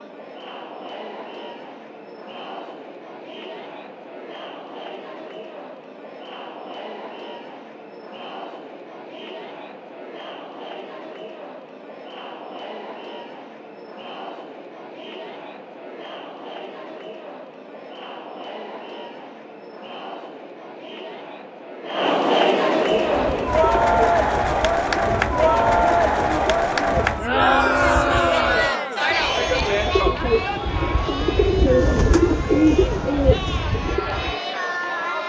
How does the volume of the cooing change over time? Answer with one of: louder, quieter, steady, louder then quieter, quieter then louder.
louder.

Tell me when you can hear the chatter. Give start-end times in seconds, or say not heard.
0.0-35.2.